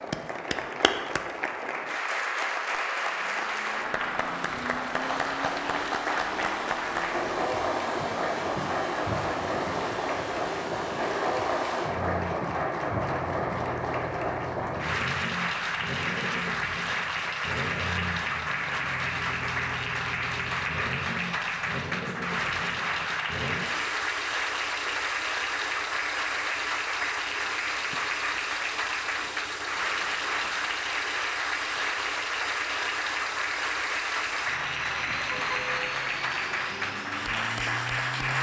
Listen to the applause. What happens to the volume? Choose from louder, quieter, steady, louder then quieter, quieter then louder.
steady.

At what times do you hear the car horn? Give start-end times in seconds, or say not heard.
35.0-36.0.